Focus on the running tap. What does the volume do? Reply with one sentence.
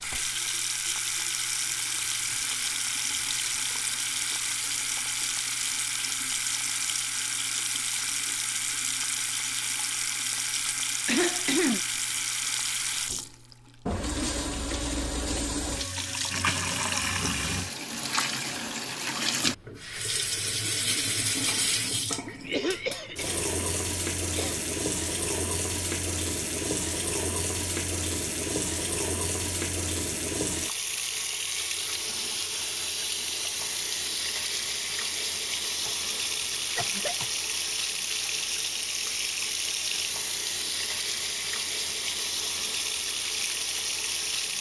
The loudness of the running tap stays about the same.